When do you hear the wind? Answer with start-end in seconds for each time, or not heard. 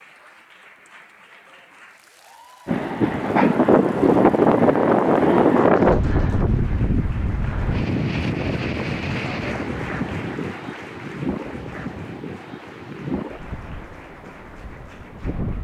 2.6-15.5.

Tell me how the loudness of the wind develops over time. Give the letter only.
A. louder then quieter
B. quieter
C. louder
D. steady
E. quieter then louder
B.